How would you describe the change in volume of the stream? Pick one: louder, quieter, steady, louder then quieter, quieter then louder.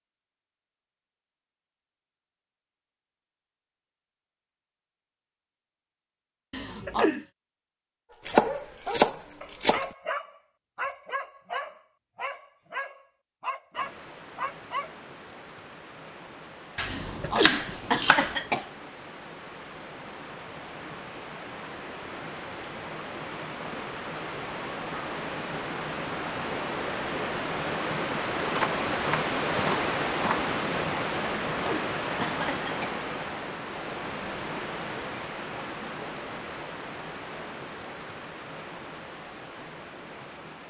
louder then quieter.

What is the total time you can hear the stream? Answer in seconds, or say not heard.
27 s.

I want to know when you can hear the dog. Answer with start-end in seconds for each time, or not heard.
8.1-14.9.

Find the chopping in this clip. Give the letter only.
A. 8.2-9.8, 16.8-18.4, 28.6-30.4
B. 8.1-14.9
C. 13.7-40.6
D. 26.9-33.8
A.